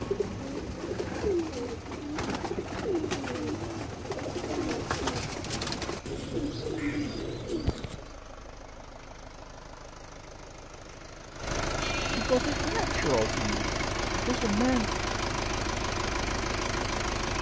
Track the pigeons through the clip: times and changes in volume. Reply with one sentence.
You can hear the pigeons from 0.0 to 8.1 s, at a steady volume.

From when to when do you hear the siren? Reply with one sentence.
You can't hear the siren here.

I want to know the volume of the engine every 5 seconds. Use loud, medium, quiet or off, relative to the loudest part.
quiet, quiet, loud, loud.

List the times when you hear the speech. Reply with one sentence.
The speech can be heard from 12.1 to 14.9 s.